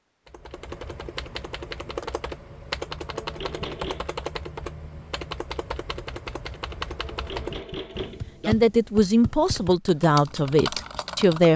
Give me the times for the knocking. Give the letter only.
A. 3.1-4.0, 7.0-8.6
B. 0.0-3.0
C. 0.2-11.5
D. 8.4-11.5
A.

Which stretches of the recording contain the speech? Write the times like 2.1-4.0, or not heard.
8.4-11.5.